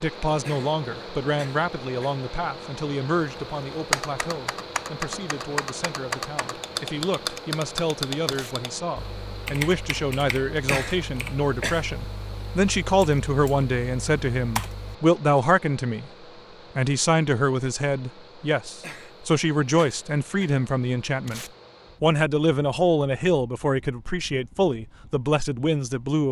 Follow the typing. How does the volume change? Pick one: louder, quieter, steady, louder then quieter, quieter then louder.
quieter.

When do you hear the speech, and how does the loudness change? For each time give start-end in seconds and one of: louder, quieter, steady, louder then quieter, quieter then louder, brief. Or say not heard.
0.0-16.1 quieter then louder
16.8-26.2 steady.